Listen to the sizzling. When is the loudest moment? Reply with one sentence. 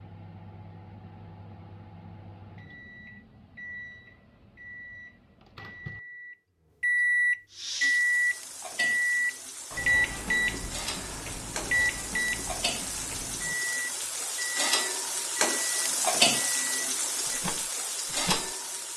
The loudest moment of the sizzling is at 16 seconds.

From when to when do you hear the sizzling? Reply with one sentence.
You can hear the sizzling from 7.5 to 18.9 s.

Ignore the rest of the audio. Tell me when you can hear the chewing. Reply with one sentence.
You can't hear the chewing here.